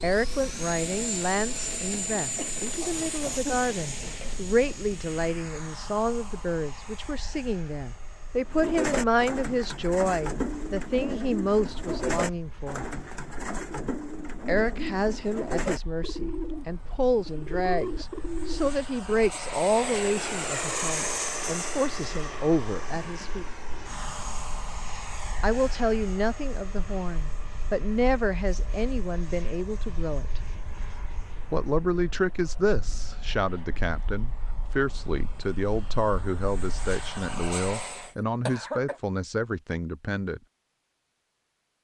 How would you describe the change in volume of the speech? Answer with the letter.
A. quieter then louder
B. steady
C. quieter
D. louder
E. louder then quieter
B.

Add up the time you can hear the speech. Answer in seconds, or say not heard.
36 s.